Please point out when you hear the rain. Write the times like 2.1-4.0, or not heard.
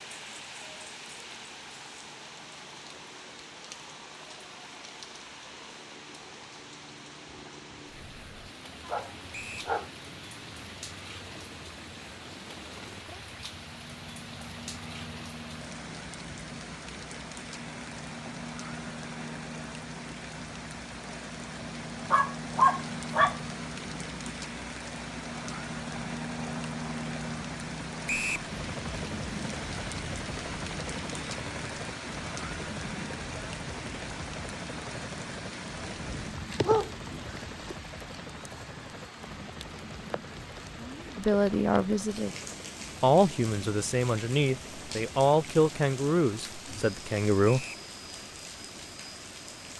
0.0-49.7.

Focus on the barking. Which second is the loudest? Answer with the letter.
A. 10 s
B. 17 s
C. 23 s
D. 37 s
C.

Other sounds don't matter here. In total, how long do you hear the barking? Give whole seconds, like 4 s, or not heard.
4 s.